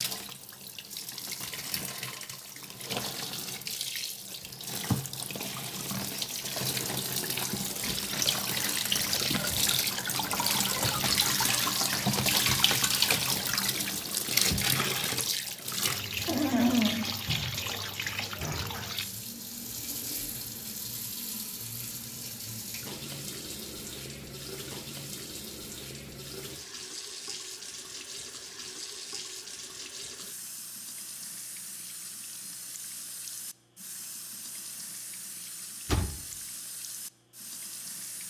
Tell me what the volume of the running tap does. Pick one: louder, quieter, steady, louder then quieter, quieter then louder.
louder then quieter.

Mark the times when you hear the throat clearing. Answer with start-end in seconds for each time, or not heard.
16.2-17.1.